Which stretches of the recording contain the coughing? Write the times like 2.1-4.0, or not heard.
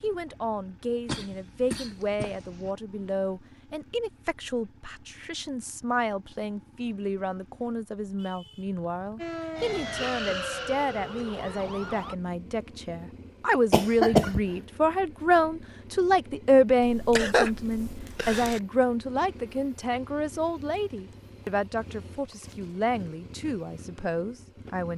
1.1-2.7, 13.7-14.4, 16.8-18.6.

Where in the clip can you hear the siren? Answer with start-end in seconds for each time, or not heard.
9.2-12.2.